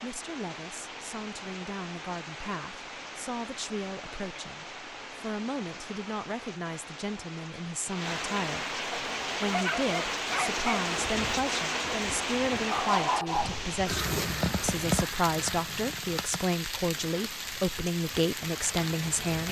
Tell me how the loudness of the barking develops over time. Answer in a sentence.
The loudness of the barking goes down, then up.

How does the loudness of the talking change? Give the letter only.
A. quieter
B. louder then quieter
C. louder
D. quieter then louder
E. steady
C.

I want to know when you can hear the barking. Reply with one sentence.
You can hear the barking from 8.9 to 13.7 s.